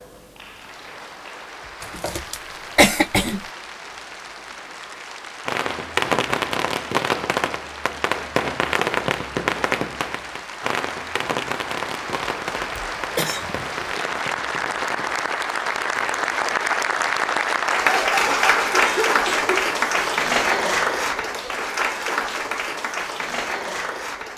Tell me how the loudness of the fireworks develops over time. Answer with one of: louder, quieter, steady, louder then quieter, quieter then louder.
quieter.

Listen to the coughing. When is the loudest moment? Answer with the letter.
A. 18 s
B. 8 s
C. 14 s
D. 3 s
D.